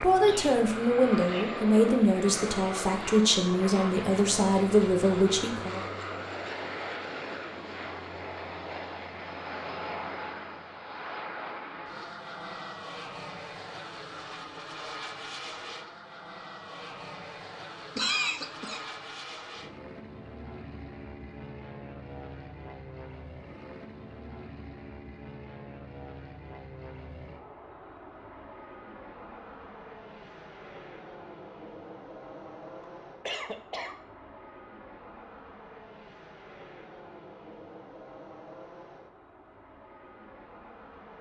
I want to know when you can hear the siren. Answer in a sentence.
You can't hear the siren here.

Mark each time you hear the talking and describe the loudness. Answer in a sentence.
You can hear the talking from 0.0 to 5.8 s, at a steady volume.